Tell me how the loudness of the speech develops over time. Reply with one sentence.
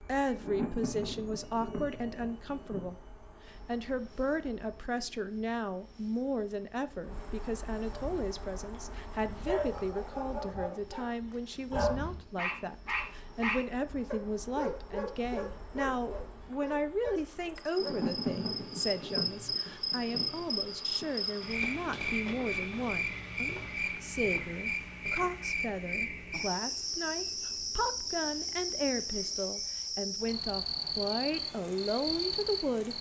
The volume of the speech stays about the same.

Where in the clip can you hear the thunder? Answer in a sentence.
You can hear the thunder from 0.3 to 3.0 s and from 17.8 to 21.1 s.